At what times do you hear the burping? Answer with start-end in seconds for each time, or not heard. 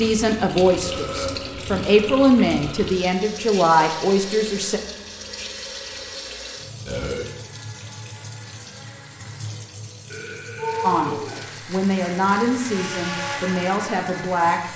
0.8-3.0, 6.8-7.2, 10.1-11.4.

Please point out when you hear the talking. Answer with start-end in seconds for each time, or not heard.
0.0-4.8, 10.8-14.6.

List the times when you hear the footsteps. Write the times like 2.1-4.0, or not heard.
not heard.